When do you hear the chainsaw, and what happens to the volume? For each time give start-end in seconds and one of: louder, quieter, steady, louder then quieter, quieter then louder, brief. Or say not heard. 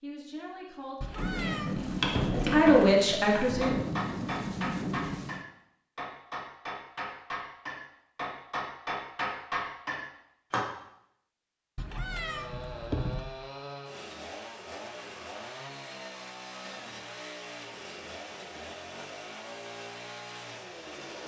11.9-21.2 steady.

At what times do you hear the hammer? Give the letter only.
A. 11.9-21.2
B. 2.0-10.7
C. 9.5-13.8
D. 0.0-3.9
B.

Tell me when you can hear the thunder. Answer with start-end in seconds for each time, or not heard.
1.1-5.5.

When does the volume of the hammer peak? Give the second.
3 s.